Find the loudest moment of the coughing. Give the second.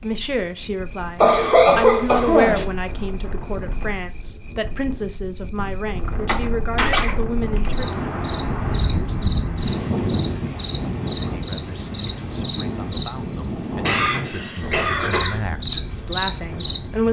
2 s.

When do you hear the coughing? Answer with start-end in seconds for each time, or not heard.
1.2-2.6, 6.2-7.7, 13.8-15.4.